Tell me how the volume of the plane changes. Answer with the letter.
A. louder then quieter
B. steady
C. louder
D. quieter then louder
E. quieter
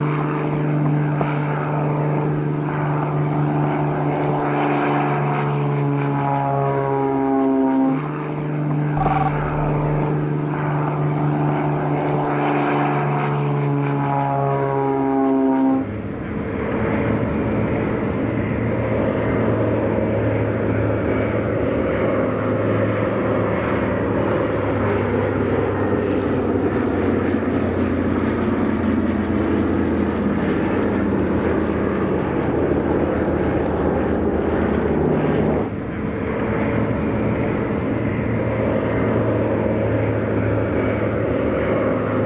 B.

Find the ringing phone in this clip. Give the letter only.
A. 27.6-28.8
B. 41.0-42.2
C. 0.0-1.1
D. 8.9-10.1
D.